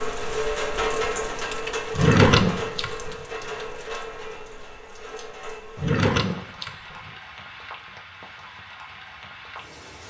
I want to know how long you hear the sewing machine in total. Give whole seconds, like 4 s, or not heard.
not heard.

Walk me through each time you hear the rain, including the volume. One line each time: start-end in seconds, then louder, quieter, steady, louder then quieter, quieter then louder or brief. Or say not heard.
0.0-10.0 quieter.